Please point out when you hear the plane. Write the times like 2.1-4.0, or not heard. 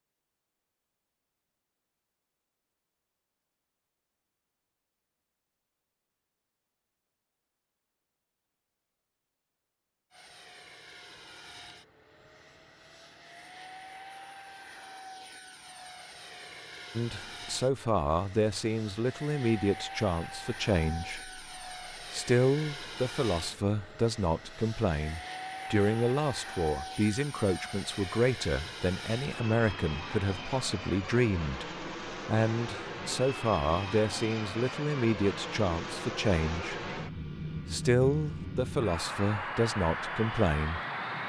10.1-41.2.